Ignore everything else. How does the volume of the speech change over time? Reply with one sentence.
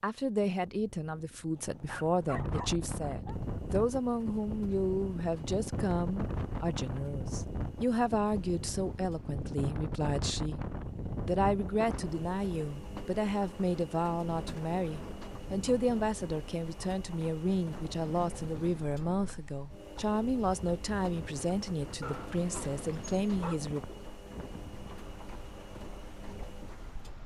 The loudness of the speech stays about the same.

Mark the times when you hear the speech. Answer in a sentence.
You can hear the speech from 0.0 to 10.6 s and from 11.2 to 23.8 s.